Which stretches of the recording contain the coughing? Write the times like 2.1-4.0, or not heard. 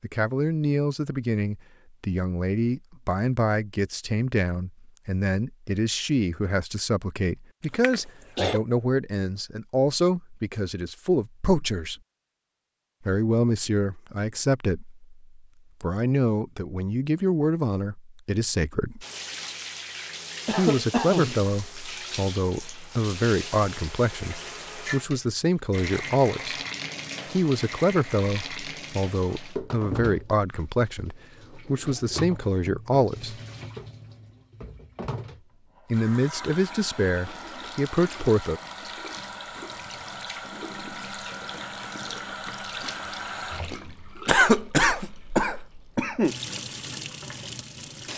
7.8-8.6, 20.4-21.4, 44.2-46.4.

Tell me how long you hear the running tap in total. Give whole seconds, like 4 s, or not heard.
29 s.